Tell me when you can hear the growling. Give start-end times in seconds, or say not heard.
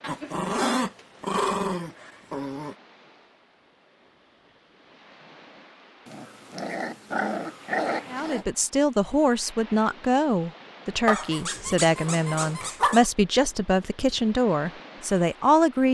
0.0-2.8, 6.0-8.4, 11.1-13.1.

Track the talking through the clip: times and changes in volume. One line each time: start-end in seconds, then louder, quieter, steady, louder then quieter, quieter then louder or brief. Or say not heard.
8.1-15.8 steady.